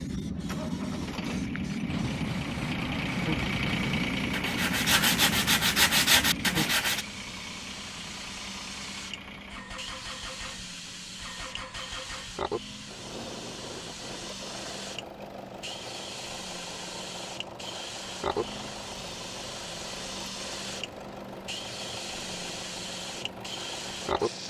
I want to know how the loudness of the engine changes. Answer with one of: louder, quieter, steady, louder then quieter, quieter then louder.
quieter.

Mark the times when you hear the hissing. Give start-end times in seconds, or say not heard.
0.0-24.4.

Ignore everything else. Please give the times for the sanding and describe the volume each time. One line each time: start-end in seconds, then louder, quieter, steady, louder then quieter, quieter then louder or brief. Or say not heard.
1.9-7.0 louder.